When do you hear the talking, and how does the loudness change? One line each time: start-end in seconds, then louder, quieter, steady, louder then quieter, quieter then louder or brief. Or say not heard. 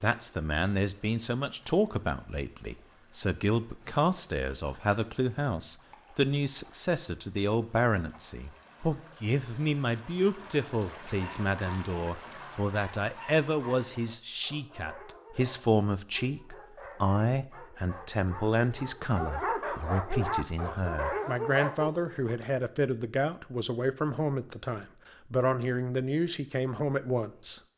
0.0-27.6 steady.